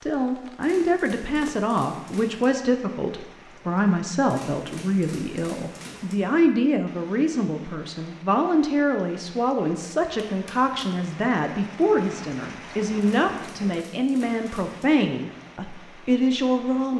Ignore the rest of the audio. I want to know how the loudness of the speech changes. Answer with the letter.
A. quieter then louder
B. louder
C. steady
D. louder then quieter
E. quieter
C.